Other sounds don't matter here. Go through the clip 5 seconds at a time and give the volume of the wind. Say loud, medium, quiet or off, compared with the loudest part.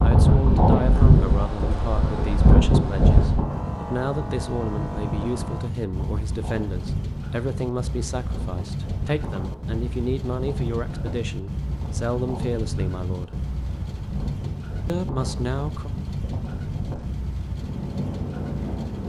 loud, quiet, quiet, quiet.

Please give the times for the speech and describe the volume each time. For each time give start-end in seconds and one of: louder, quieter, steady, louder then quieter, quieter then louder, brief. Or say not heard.
0.0-13.3 steady
14.8-15.9 brief.